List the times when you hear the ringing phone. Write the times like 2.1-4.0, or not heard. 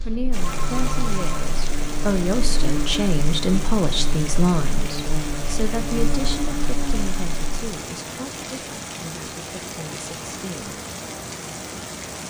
0.4-1.4.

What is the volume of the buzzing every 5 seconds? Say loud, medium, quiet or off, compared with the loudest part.
loud, loud, off.